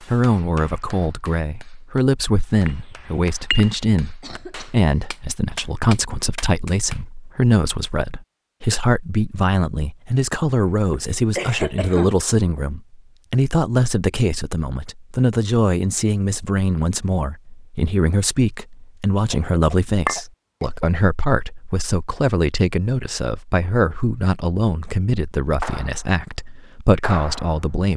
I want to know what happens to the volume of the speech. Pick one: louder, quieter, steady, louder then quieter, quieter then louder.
steady.